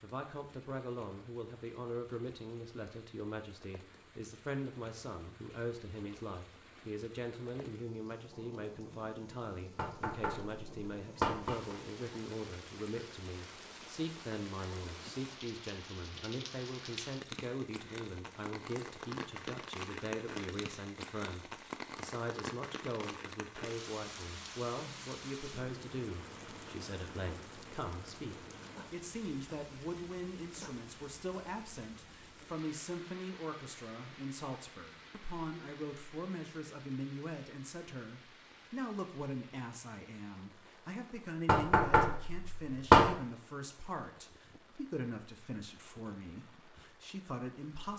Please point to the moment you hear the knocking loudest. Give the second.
43 s.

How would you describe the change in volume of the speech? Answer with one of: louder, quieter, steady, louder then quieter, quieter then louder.
steady.